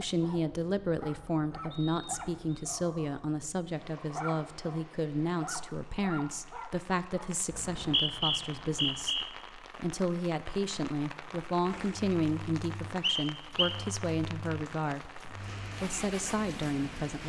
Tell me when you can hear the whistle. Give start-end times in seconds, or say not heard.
1.7-2.6, 7.5-9.2, 13.0-13.8.